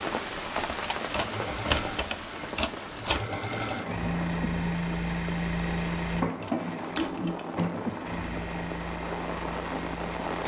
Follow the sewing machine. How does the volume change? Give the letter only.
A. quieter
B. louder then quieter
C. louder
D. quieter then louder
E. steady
B.